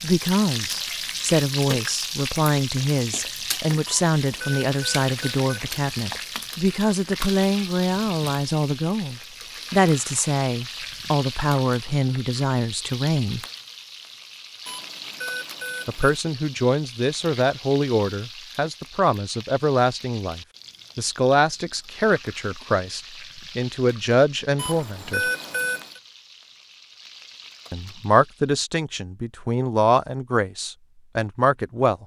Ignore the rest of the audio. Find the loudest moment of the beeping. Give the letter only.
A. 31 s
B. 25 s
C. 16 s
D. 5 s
B.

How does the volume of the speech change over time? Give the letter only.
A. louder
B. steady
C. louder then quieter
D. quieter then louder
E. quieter
B.